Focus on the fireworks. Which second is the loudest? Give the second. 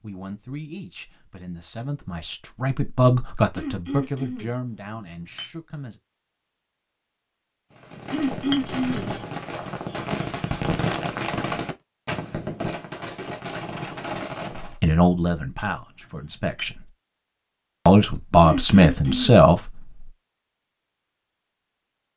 11 s.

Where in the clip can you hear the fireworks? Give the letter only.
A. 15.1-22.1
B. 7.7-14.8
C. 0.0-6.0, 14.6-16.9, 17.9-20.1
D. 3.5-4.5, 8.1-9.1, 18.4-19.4
B.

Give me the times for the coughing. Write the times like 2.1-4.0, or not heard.
3.5-4.5, 8.1-9.1, 18.4-19.4.